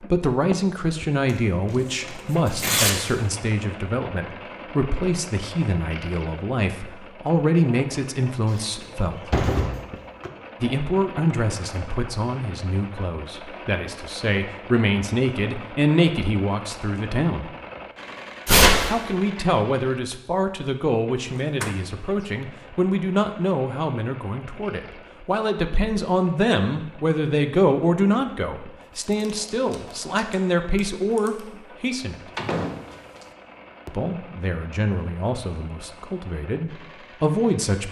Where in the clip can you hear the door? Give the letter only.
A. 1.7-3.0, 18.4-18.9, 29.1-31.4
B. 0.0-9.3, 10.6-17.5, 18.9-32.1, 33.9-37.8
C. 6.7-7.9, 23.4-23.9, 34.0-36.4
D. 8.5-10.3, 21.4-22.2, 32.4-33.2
D.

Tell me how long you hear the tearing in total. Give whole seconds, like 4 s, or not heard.
4 s.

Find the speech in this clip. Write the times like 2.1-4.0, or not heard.
0.0-9.3, 10.6-17.5, 18.9-32.1, 33.9-37.8.